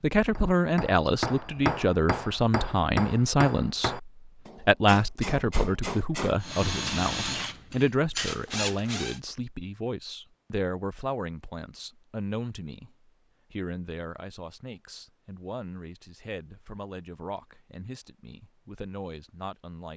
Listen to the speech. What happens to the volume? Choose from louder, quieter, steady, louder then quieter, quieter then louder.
quieter.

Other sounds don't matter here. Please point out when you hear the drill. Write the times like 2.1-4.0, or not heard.
6.4-9.2.